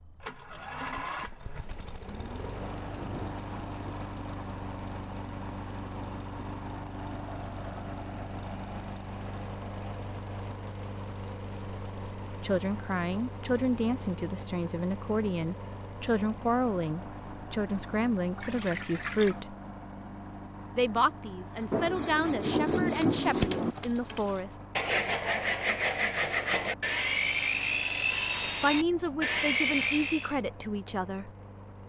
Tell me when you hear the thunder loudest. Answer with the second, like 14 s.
23 s.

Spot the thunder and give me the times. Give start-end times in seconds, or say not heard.
1.6-4.0, 21.7-23.8.